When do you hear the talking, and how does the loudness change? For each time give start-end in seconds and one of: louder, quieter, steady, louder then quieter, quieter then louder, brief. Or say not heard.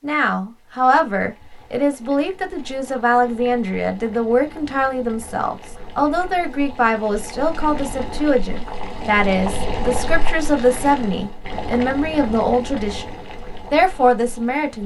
0.0-13.1 steady
13.7-14.8 brief.